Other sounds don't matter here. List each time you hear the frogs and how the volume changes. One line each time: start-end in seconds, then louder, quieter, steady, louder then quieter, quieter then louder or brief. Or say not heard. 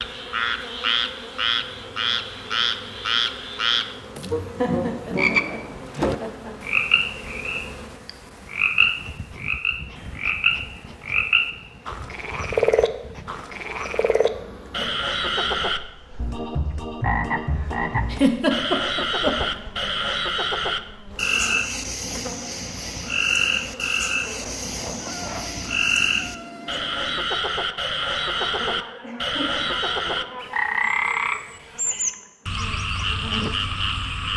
0.0-34.3 steady.